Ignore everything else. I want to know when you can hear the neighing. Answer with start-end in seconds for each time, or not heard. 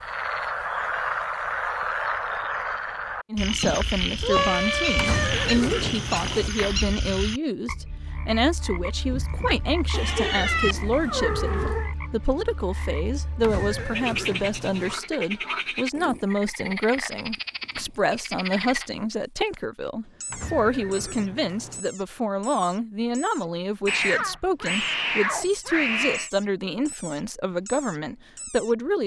5.0-6.5, 13.4-14.9, 20.3-21.9.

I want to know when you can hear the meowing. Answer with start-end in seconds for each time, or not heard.
4.2-5.3, 9.9-11.9, 23.9-26.3.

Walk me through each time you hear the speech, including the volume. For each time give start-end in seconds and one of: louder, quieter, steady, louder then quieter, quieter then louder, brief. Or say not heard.
3.3-29.0 steady.